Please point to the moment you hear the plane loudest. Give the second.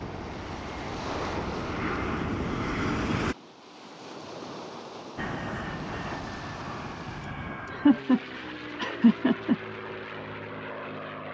3 s.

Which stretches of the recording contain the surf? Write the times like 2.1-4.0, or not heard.
0.0-7.3.